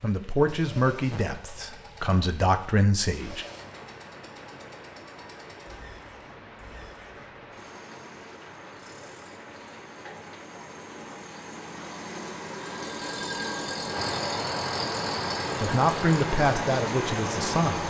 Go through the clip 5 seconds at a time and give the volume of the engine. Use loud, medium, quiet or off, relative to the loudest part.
quiet, quiet, loud, loud.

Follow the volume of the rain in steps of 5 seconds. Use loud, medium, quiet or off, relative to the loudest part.
quiet, quiet, medium, loud.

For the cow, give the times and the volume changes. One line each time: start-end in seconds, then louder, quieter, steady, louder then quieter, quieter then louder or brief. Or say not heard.
not heard.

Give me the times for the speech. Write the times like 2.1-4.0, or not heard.
0.0-3.5, 15.6-17.8.